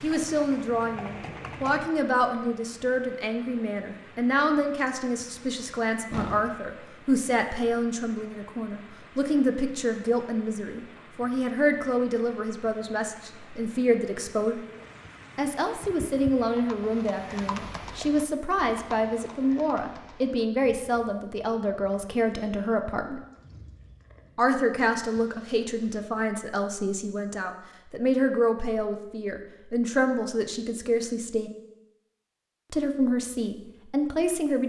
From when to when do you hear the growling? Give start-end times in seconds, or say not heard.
not heard.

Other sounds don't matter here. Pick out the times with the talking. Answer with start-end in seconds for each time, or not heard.
0.0-14.6, 15.3-23.2, 24.4-31.5, 32.7-34.6.